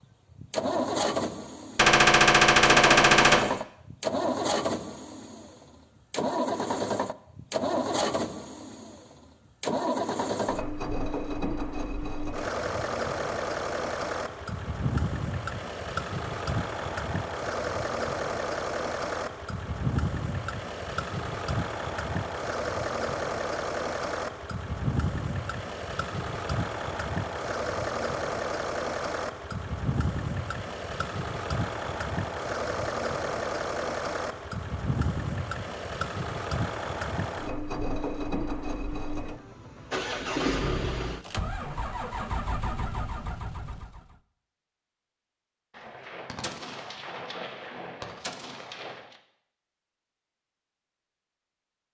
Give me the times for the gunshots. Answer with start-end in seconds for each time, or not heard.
1.8-3.5, 45.8-49.1.